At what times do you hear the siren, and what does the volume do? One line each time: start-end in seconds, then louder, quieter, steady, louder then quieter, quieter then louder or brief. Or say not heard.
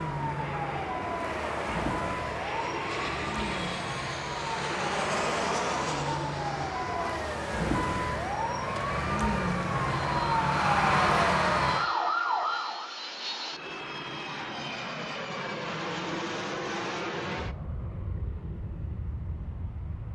0.0-13.0 louder.